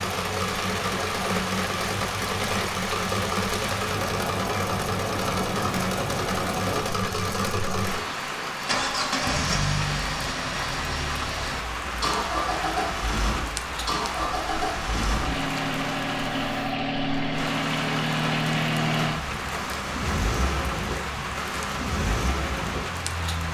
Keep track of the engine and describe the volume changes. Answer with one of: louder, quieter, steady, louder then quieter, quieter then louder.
steady.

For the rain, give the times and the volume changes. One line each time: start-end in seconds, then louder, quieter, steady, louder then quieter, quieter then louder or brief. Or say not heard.
0.0-23.4 steady.